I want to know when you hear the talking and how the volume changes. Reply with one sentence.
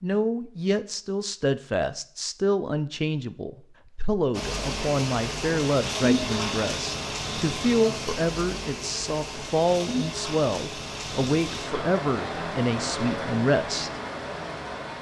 The talking can be heard from 0.0 to 14.0 s, at a steady volume.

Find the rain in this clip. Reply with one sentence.
The rain can be heard from 4.3 to 14.9 s.